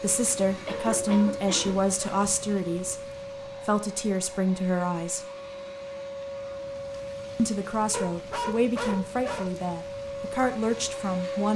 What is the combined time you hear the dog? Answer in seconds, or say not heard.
3 s.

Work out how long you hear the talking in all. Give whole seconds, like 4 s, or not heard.
9 s.